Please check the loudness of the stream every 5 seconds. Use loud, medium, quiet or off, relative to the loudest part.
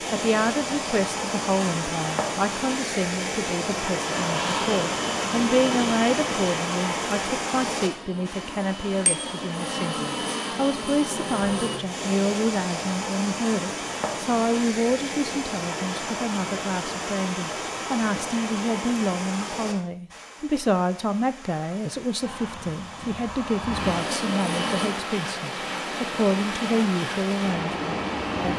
loud, loud, loud, loud, medium, loud.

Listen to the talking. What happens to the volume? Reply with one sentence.
The volume of the talking stays about the same.